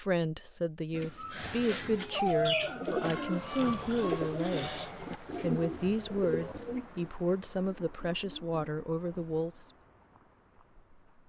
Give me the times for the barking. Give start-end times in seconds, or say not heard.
2.1-3.3.